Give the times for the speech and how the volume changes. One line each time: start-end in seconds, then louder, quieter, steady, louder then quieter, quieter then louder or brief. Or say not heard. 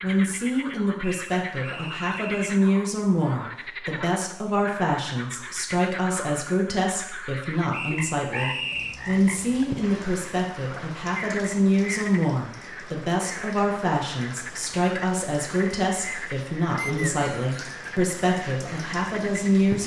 0.0-19.8 steady.